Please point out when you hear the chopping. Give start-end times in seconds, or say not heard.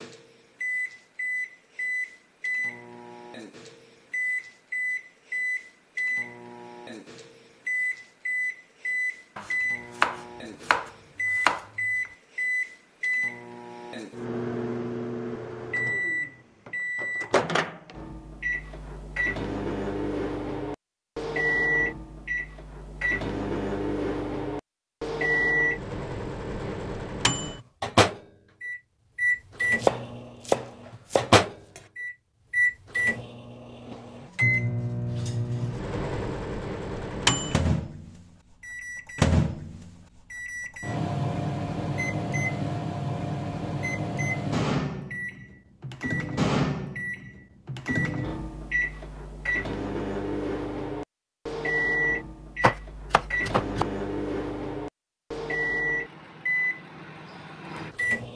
9.3-11.7, 29.8-31.8, 52.6-53.9.